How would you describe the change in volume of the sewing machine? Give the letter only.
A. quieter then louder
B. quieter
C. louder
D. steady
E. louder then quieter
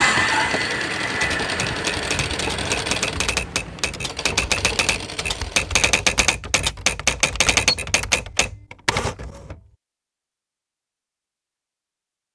B.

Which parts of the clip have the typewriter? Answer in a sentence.
The typewriter can be heard from 1.2 to 9.6 s.